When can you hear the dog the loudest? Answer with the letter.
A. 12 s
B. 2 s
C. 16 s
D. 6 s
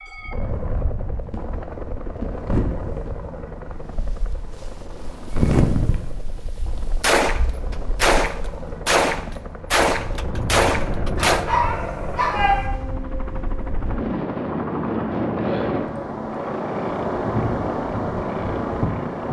A.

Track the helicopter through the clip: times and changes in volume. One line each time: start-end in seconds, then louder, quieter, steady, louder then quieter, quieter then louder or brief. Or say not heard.
0.0-19.2 quieter then louder.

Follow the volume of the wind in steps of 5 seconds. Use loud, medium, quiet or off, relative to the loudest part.
medium, loud, medium, loud.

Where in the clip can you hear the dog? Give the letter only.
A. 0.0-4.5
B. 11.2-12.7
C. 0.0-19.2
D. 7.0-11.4
B.